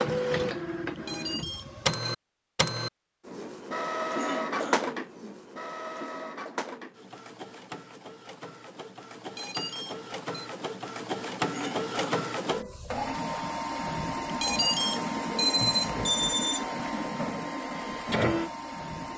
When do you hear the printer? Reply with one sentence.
You can hear the printer from 0.0 to 19.1 s.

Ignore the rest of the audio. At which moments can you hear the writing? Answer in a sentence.
You can't hear the writing here.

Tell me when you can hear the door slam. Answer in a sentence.
You can't hear the door slam here.